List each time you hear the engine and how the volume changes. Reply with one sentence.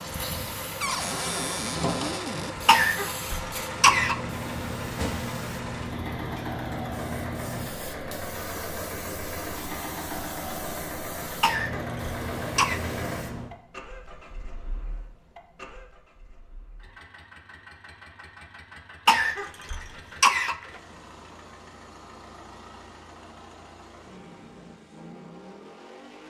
The engine can be heard from 0.0 to 26.2 s, getting quieter.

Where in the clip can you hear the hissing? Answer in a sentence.
You can hear the hissing from 0.0 to 13.5 s.